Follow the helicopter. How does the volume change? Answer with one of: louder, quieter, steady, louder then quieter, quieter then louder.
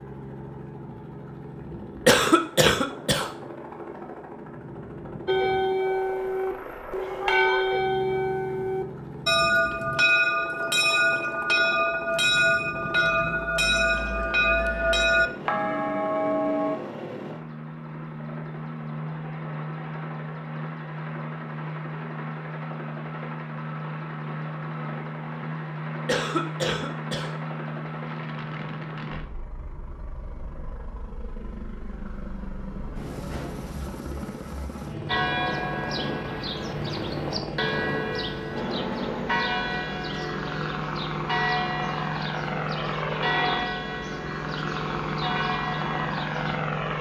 louder.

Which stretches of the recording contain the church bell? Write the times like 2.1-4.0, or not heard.
5.2-16.8, 35.0-46.6.